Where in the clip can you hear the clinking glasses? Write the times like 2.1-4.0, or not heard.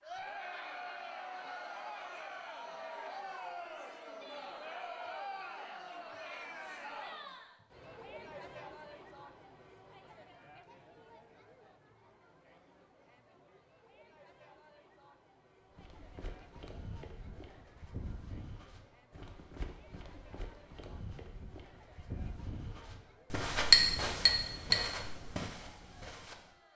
23.7-24.8.